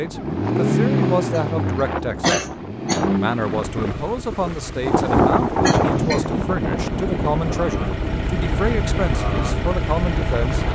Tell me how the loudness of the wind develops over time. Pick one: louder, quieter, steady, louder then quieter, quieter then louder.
louder then quieter.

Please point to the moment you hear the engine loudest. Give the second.
1 s.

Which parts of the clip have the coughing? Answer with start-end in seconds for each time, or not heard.
1.3-3.0, 5.6-6.2.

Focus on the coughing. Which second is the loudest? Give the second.
2 s.